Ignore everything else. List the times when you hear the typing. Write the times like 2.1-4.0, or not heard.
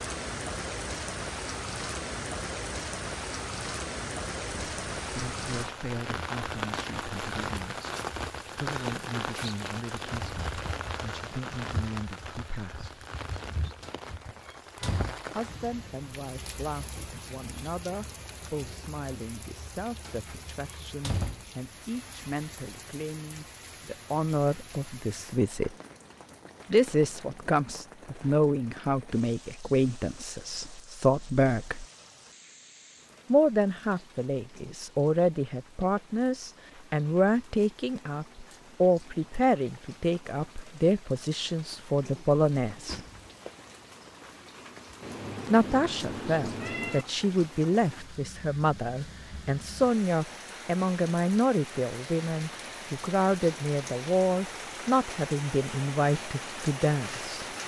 not heard.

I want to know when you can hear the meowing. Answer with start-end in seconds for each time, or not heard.
45.0-47.0.